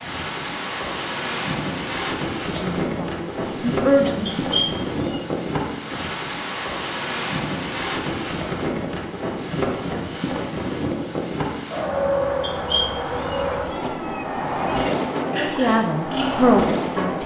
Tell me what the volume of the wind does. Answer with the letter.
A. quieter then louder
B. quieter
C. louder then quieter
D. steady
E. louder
D.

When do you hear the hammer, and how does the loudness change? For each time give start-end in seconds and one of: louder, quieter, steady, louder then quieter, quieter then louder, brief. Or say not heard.
not heard.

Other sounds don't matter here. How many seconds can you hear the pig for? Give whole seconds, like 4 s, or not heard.
2 s.